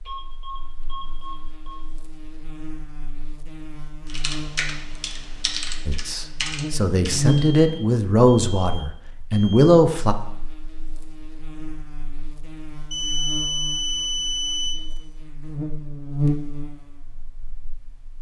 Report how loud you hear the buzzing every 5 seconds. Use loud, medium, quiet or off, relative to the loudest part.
quiet, loud, quiet, loud.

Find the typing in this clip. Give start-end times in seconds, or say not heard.
4.0-7.6.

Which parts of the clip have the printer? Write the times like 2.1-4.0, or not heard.
not heard.